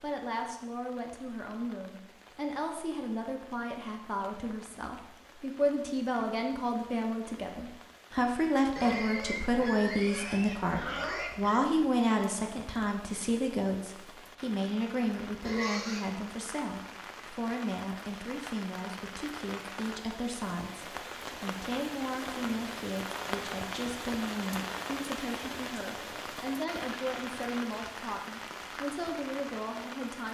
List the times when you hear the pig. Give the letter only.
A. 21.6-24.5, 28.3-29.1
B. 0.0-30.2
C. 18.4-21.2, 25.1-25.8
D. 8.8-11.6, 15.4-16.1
D.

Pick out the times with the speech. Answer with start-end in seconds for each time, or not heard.
0.0-30.2.